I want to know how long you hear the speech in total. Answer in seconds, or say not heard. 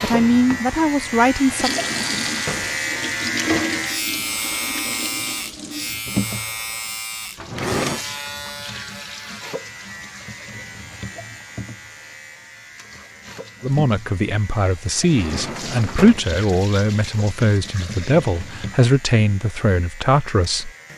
9 s.